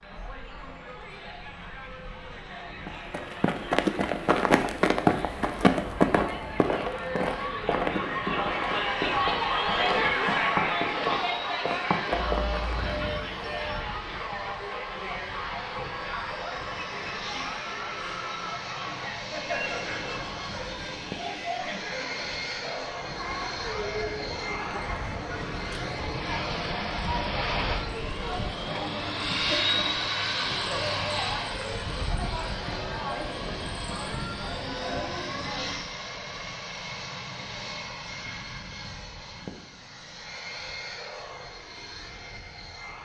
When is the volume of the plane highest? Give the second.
30 s.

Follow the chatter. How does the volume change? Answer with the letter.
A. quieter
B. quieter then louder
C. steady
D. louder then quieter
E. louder
D.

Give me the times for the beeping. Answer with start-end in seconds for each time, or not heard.
12.1-13.8.